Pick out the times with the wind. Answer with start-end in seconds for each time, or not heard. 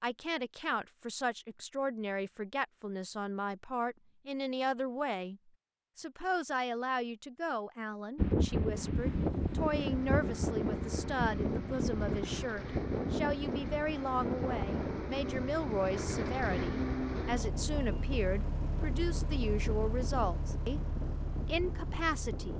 8.2-22.5.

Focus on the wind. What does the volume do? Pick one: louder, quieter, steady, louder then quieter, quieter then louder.
quieter.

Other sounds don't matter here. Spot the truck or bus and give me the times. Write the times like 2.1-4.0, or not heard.
8.9-22.5.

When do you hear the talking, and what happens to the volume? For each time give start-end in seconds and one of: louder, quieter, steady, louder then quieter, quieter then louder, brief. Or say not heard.
0.0-20.8 steady
21.4-22.5 brief.